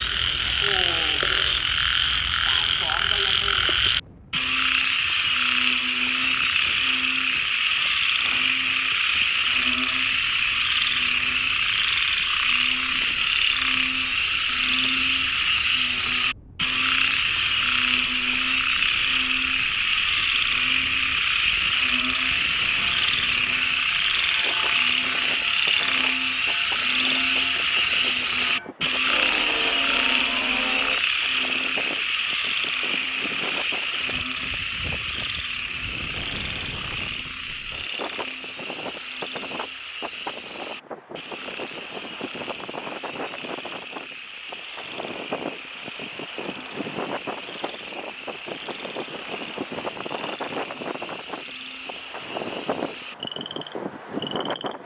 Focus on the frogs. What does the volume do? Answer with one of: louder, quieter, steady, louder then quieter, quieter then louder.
quieter.